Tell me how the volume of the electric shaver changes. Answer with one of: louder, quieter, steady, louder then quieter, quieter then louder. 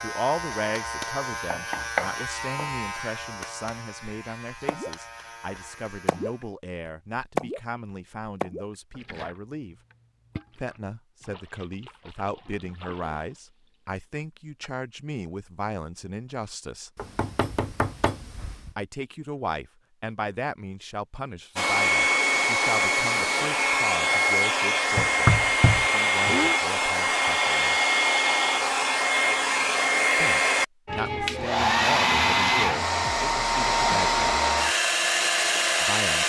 quieter.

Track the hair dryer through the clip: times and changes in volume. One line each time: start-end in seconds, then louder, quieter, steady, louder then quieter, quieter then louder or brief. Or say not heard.
21.6-36.2 steady.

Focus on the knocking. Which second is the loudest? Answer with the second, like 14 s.
25 s.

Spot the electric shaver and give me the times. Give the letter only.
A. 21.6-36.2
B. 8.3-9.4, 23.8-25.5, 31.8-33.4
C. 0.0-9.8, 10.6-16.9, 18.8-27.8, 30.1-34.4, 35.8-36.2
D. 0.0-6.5
D.